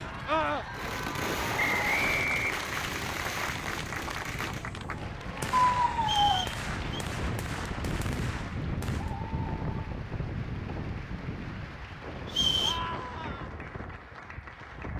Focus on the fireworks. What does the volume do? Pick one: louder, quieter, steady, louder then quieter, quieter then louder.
quieter.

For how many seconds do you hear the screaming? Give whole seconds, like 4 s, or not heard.
2 s.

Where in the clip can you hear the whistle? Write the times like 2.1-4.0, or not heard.
1.6-2.5, 6.0-7.0, 12.2-12.8.